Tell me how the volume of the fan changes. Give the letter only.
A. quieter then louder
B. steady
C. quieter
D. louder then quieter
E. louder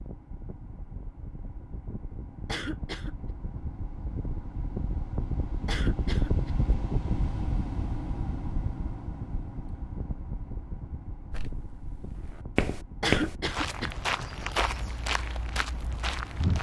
D.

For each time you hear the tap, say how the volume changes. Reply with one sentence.
The tap can't be heard in this clip.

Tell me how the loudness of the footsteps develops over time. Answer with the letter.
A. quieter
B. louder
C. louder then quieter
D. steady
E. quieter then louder
C.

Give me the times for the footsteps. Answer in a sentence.
The footsteps can be heard from 11.3 to 16.5 s.